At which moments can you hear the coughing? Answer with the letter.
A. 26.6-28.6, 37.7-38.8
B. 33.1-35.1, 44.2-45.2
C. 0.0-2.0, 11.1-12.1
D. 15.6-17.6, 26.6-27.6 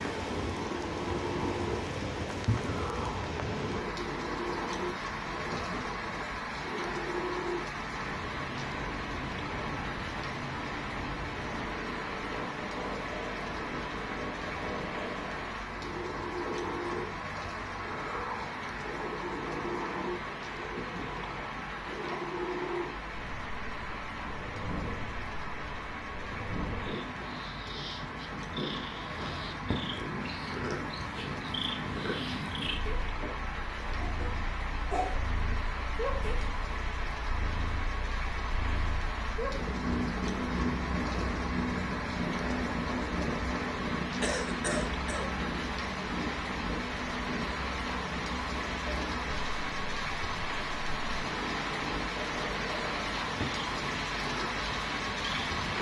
B.